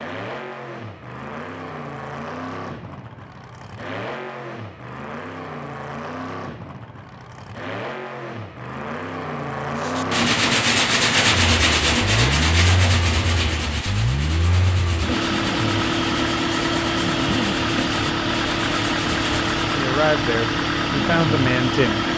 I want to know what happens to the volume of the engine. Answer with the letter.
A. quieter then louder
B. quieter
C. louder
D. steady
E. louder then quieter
C.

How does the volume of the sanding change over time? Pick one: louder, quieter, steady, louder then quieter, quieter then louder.
quieter.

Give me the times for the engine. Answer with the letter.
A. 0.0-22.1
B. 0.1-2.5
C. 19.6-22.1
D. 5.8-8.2
A.